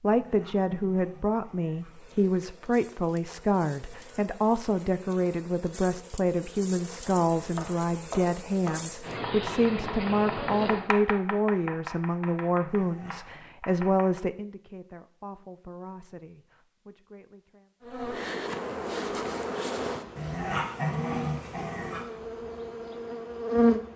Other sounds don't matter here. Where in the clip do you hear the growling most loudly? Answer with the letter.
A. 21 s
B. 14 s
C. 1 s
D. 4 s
A.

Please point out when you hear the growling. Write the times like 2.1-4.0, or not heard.
0.1-1.9, 12.7-13.4, 20.1-22.1.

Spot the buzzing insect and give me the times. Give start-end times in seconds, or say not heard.
1.8-10.9, 17.8-23.9.